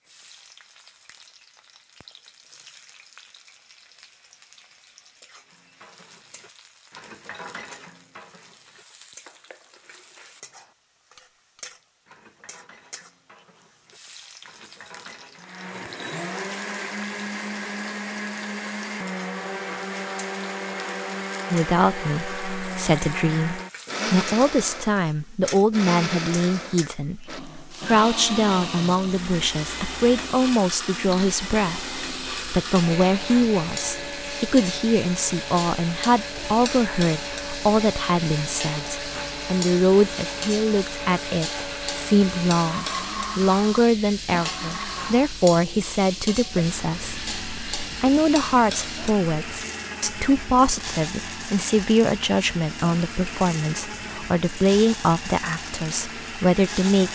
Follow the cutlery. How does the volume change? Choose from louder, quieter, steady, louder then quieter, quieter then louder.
quieter then louder.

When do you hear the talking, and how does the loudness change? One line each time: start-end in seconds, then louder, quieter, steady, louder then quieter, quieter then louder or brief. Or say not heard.
21.5-57.0 steady.